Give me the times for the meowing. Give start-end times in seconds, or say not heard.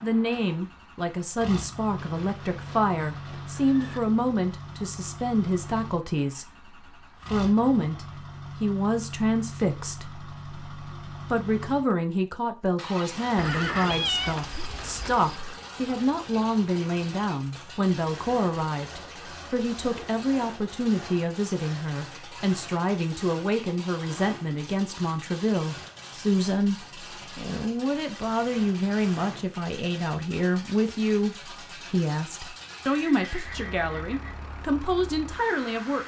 13.8-14.8.